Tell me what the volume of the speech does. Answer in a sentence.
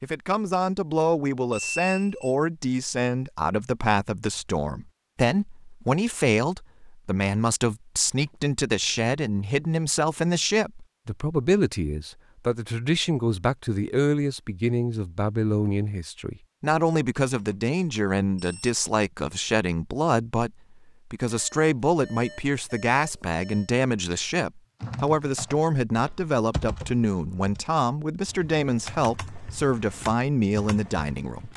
The loudness of the speech stays about the same.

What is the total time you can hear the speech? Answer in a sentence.
The speech can be heard for 31 seconds in total.